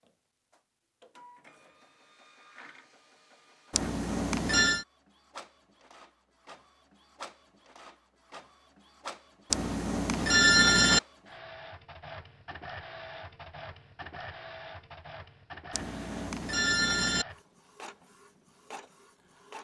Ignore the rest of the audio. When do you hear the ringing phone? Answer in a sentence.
The ringing phone can be heard from 3.7 to 4.8 s, from 9.5 to 11.0 s and from 15.7 to 17.2 s.